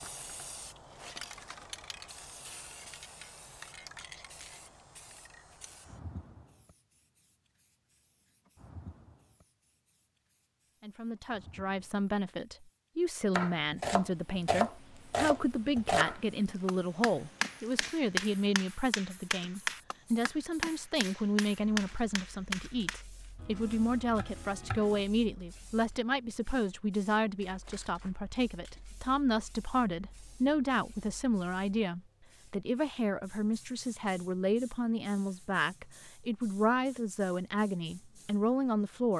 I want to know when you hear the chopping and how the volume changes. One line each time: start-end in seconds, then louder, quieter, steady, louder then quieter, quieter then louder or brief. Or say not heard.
13.3-25.1 quieter.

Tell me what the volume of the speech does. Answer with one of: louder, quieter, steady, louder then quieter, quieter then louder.
steady.